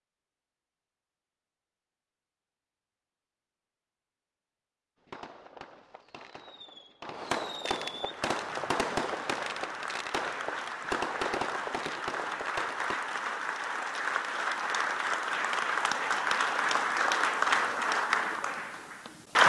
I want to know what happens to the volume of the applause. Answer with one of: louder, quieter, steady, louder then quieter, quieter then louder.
louder.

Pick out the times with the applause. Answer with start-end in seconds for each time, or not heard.
8.0-19.4.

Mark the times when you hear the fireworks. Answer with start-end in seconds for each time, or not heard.
5.0-13.0.